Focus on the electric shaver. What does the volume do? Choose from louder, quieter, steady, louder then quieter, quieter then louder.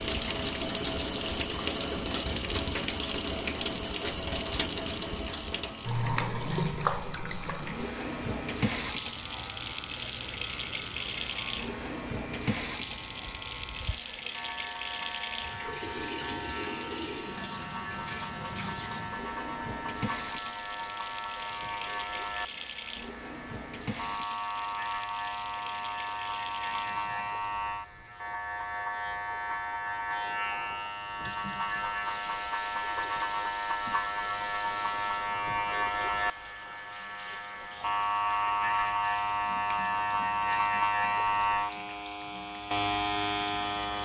louder.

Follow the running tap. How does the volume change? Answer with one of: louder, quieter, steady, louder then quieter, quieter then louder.
quieter.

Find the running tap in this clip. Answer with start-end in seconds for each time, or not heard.
0.0-44.0.